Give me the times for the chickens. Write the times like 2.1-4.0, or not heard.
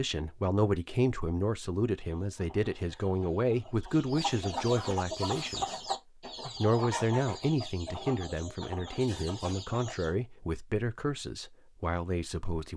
2.0-10.1.